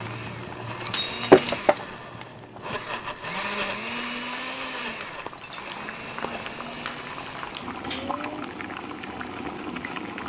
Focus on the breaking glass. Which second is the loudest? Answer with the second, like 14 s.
1 s.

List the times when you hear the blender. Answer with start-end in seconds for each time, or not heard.
0.0-8.4.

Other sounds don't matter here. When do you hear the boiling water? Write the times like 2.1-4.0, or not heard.
0.0-10.2.